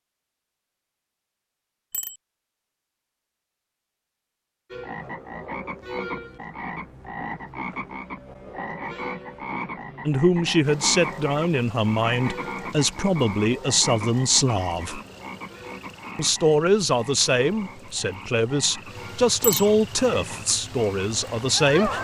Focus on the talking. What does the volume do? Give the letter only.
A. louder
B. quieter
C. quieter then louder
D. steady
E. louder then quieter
D.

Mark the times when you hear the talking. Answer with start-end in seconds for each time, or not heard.
10.1-15.0, 16.1-21.9.